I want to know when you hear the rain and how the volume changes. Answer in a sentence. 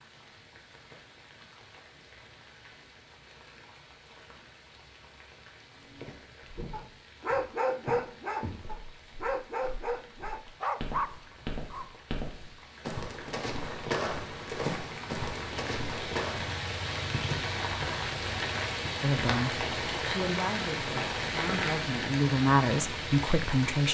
You can hear the rain from 0.0 to 23.8 s, getting louder.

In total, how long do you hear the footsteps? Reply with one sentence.
You can hear the footsteps for 11 seconds altogether.